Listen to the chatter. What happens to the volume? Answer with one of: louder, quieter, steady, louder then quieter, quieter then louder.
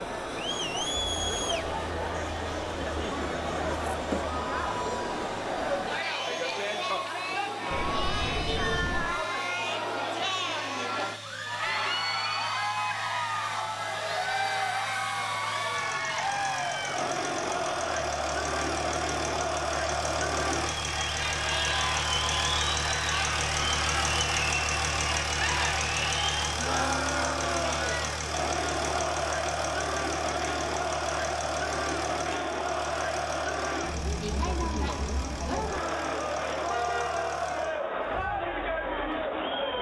steady.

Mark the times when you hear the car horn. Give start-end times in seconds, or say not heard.
7.7-9.1, 13.7-14.7, 36.6-37.4.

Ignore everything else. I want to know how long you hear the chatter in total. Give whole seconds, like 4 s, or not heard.
40 s.